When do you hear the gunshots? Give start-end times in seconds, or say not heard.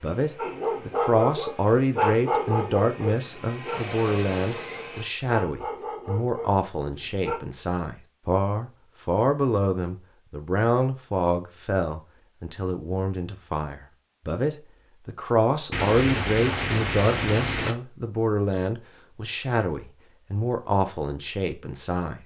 15.7-17.8.